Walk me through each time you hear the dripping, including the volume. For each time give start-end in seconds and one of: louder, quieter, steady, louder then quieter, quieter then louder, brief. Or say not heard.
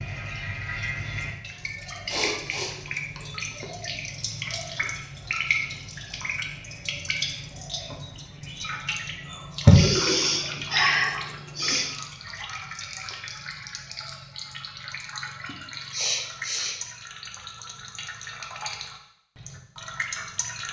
0.0-20.6 louder then quieter.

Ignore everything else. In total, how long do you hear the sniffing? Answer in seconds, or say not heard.
5 s.